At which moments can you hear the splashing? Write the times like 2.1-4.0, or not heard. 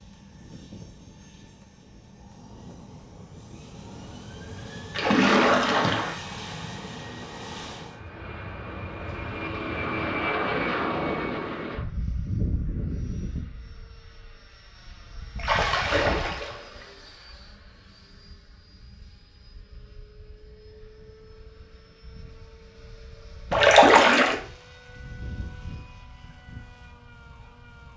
4.9-6.2, 15.3-16.6, 23.5-24.4.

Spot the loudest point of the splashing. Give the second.
24 s.